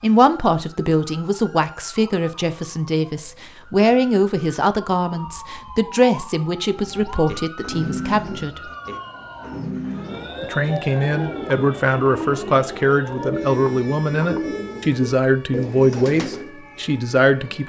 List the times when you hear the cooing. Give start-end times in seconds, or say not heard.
6.7-16.5.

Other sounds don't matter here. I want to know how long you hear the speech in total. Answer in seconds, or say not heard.
16 s.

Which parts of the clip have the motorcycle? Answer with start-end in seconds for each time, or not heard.
not heard.